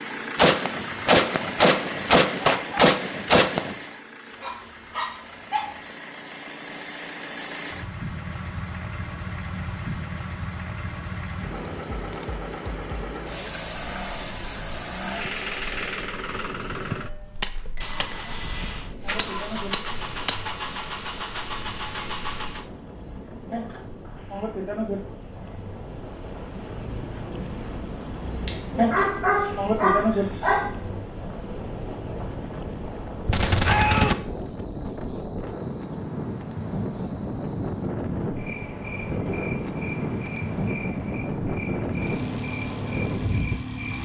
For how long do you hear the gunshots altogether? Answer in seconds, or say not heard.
7 s.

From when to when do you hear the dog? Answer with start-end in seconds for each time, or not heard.
4.3-5.7, 28.4-30.6.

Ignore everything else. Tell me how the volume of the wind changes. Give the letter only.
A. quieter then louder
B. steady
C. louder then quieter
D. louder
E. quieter
D.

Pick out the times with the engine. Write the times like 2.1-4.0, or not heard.
0.0-22.7, 41.9-43.9.